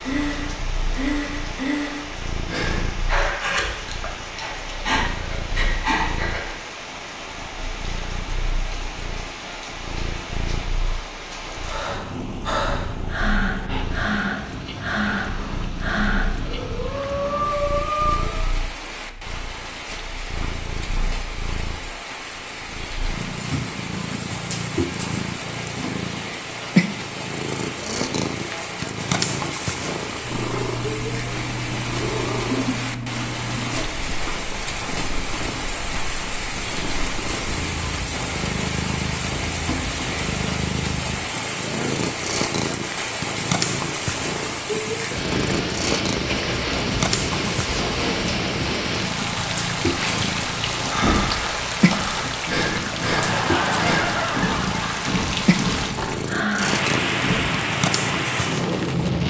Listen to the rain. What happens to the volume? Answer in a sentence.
The volume of the rain goes up.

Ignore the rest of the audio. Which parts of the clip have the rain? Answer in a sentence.
You can hear the rain from 0.0 to 59.2 s.